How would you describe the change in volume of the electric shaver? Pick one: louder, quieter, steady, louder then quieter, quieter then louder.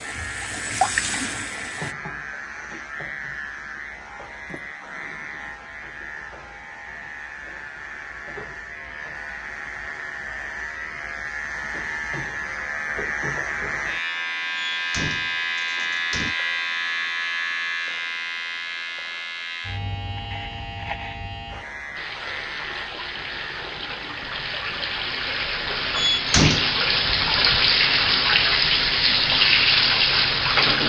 louder then quieter.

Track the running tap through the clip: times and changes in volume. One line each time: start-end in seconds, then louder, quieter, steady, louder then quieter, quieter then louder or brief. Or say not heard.
0.0-1.9 brief
21.9-30.8 louder.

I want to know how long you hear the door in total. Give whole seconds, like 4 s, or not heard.
4 s.